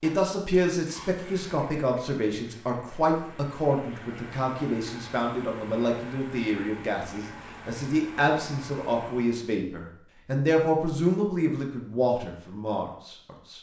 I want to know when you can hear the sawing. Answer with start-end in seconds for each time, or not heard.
not heard.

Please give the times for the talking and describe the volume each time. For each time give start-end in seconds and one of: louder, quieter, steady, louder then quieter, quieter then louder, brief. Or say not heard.
0.0-13.5 steady.